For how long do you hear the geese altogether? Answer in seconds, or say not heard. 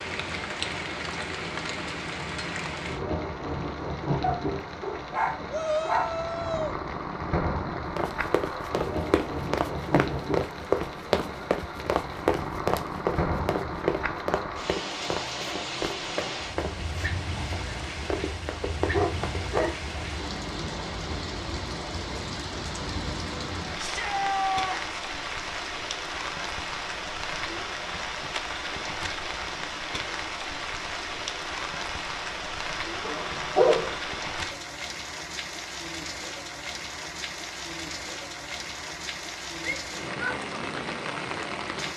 not heard.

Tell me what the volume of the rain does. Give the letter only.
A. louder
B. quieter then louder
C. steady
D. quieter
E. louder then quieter
C.